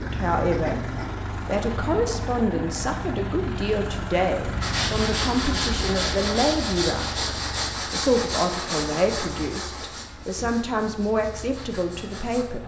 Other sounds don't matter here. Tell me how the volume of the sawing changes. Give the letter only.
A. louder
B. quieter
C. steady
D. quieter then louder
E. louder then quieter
B.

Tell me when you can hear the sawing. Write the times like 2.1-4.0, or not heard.
4.6-12.4.